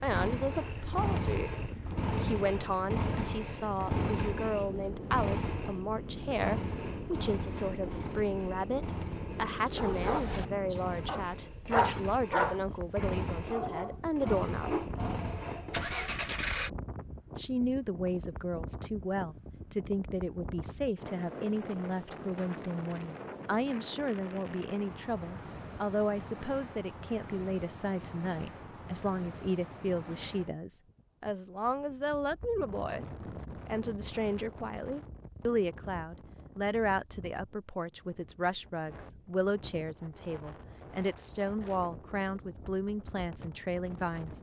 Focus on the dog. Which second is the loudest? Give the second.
12 s.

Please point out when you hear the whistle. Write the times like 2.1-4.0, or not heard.
not heard.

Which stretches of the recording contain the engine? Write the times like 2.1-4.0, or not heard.
0.0-16.7.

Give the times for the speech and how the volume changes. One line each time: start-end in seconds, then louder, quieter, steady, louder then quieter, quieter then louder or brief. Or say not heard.
0.0-1.5 brief
2.1-14.8 steady
17.4-33.0 steady
33.6-44.3 steady.